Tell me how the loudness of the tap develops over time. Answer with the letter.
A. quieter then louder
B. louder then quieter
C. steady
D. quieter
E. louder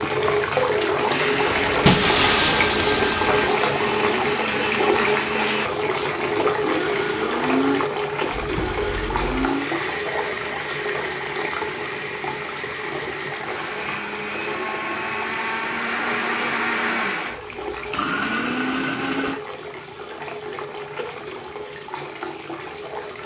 D.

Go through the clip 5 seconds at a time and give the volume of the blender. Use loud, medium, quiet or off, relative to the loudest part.
loud, loud, medium, loud, off.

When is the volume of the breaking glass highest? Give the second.
2 s.